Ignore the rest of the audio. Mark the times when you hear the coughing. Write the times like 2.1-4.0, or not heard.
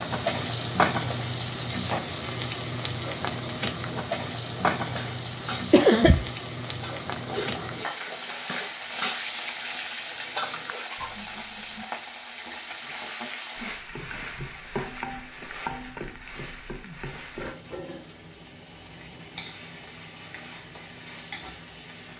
5.7-6.3.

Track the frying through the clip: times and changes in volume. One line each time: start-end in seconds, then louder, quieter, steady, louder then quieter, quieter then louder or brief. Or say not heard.
0.0-22.1 quieter.